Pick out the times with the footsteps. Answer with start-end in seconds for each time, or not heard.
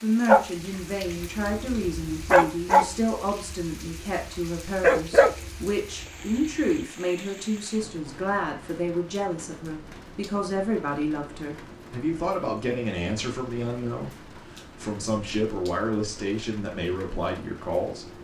not heard.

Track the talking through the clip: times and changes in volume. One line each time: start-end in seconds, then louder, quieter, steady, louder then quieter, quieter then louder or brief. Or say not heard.
0.0-18.1 steady.